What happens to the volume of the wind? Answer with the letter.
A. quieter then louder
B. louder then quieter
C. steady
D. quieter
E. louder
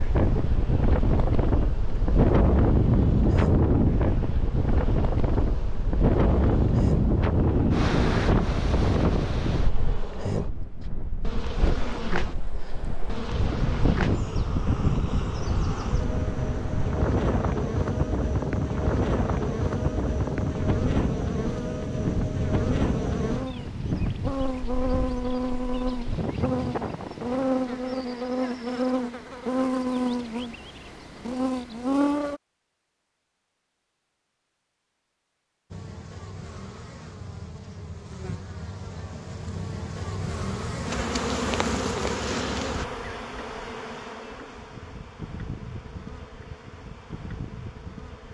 D.